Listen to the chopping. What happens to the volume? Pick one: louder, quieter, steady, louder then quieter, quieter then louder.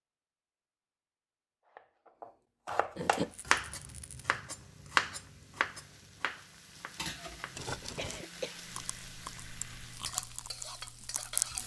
louder then quieter.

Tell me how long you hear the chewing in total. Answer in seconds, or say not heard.
3 s.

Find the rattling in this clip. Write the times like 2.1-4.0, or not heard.
3.3-4.2, 7.5-8.2.